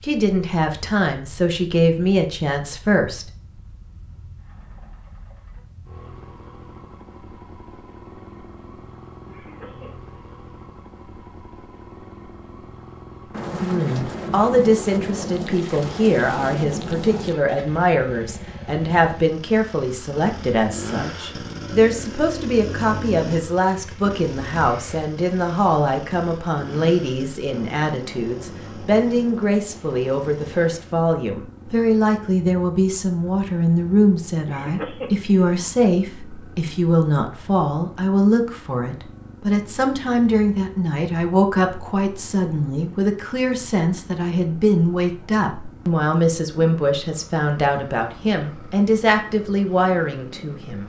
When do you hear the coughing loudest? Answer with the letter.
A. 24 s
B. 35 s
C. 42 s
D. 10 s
B.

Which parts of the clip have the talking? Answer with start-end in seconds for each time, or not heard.
0.0-3.2, 13.5-50.8.